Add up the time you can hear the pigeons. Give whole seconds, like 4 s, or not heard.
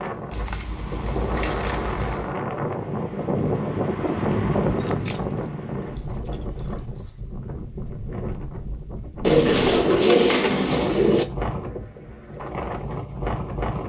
2 s.